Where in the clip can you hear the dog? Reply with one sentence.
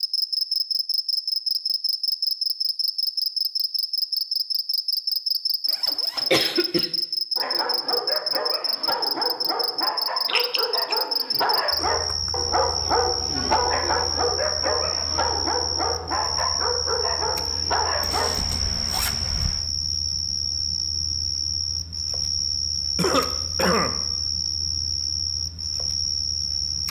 The dog can be heard from 7.3 to 18.4 s.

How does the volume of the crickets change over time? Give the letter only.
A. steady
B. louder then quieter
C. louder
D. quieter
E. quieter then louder
A.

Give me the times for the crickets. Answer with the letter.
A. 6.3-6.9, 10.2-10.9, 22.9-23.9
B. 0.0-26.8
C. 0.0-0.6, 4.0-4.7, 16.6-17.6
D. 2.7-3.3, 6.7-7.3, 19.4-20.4
B.